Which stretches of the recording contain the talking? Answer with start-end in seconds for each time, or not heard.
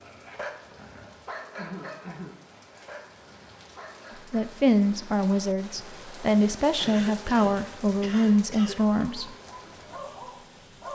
4.3-9.3.